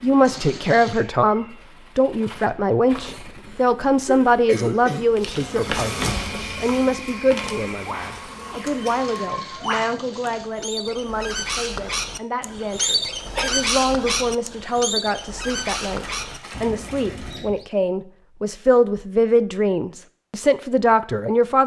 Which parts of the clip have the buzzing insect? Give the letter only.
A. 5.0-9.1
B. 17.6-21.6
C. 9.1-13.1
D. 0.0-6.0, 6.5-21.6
A.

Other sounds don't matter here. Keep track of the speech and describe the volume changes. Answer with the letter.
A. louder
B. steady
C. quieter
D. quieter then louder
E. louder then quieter
D.